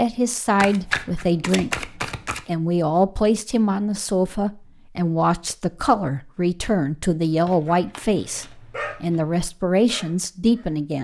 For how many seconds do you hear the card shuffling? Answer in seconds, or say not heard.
4 s.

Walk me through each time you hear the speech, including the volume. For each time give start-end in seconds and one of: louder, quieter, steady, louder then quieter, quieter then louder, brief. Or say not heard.
0.0-11.0 steady.